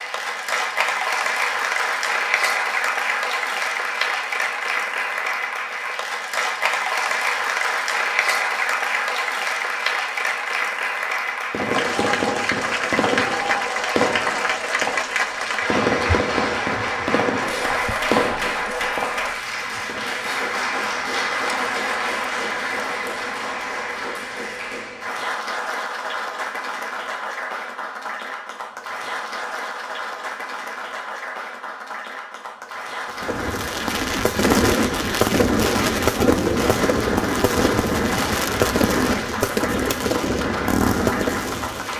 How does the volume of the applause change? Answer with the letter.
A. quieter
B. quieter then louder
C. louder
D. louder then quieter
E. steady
A.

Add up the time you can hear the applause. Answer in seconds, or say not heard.
42 s.